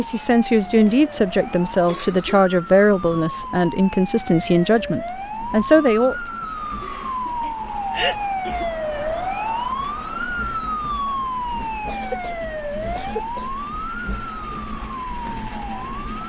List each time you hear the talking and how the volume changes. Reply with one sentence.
The talking can be heard from 0.0 to 6.2 s, at a steady volume.